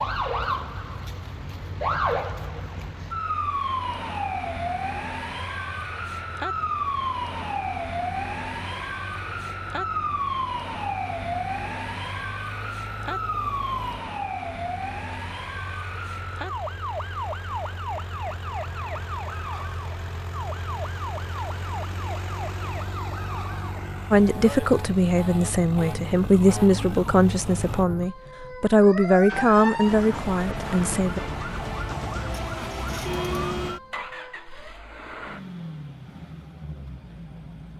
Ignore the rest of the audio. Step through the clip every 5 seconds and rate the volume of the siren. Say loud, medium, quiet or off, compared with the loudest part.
loud, loud, loud, medium, medium, medium, loud, off.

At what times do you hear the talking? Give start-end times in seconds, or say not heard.
24.1-31.2.